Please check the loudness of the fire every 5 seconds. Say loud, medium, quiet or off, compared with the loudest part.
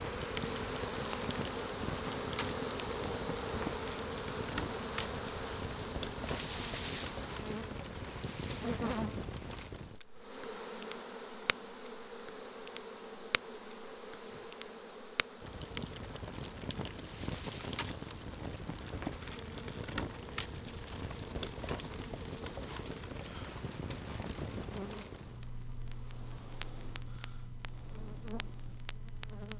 loud, loud, medium, loud, loud, medium.